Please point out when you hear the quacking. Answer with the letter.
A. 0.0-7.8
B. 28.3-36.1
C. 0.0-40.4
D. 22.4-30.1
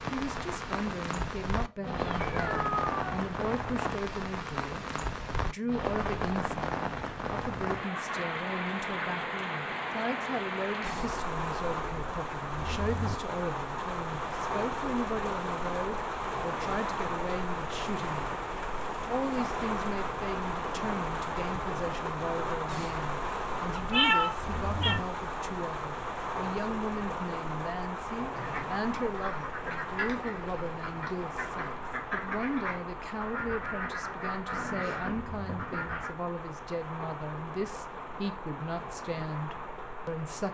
B.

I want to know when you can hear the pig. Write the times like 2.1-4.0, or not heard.
not heard.